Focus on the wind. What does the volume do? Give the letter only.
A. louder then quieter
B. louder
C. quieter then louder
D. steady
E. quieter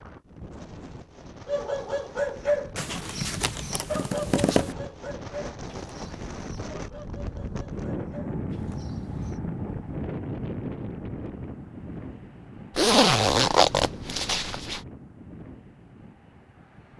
A.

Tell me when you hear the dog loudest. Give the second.
2 s.